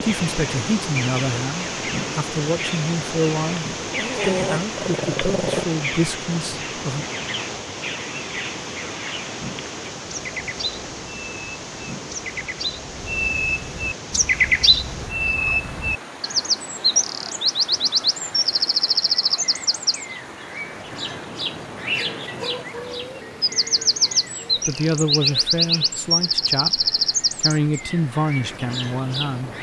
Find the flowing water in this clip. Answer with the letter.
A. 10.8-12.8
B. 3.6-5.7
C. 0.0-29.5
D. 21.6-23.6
C.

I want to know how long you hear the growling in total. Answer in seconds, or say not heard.
2 s.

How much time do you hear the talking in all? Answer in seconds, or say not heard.
12 s.